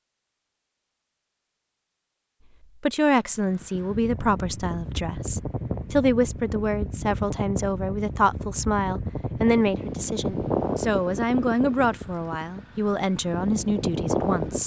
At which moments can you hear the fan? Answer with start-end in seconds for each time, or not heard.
3.4-14.6.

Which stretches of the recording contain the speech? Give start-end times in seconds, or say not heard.
2.8-14.6.